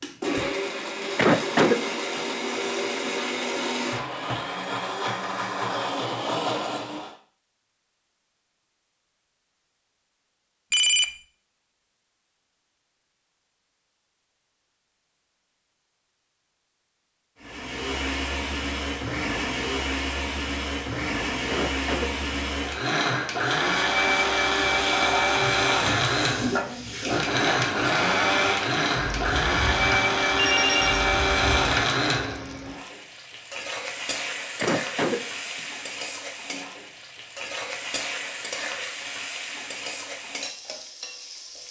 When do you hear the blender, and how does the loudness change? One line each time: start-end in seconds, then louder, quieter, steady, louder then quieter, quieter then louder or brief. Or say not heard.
0.0-7.2 steady
17.4-32.5 louder.